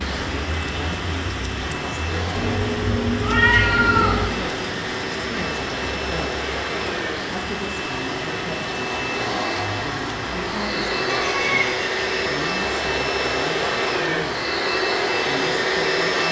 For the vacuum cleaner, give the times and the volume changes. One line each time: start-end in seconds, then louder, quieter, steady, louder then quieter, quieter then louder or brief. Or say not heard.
0.0-16.2 louder.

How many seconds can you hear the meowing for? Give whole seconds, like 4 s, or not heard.
3 s.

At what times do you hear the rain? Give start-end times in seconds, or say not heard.
0.0-16.2.